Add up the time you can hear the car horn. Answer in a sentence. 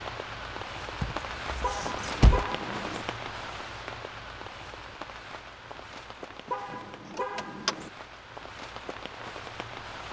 The car horn can be heard for 3 seconds in total.